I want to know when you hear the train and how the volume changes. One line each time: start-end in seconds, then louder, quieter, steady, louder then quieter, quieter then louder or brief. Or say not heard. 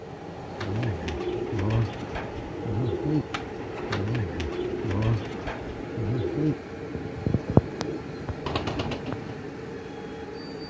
0.0-10.6 steady.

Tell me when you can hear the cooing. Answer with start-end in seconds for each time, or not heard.
0.5-9.4.